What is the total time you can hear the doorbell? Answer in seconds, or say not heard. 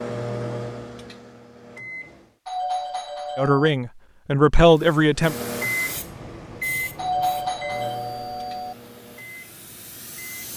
3 s.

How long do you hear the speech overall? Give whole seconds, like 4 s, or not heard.
2 s.